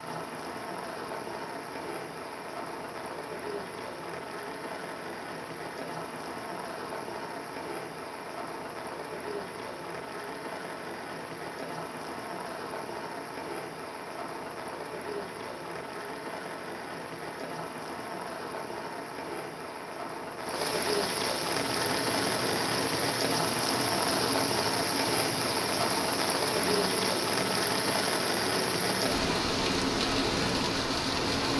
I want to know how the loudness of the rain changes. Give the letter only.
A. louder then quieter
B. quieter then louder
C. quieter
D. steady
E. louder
E.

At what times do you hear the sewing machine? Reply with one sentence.
You can hear the sewing machine from 21.4 to 31.5 s.